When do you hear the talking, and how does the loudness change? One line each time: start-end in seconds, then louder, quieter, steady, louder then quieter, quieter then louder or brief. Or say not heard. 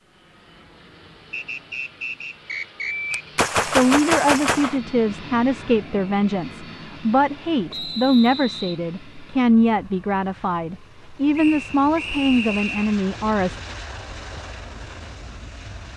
3.6-13.6 steady.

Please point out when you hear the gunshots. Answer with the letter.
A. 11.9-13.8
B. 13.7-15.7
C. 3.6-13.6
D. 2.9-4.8
D.